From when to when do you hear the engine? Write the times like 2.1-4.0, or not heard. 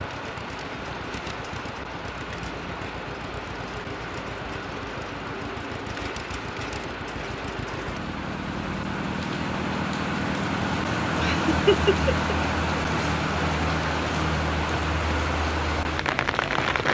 0.0-16.8.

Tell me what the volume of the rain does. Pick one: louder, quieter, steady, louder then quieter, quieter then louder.
louder.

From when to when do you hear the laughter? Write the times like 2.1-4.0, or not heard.
11.2-12.3.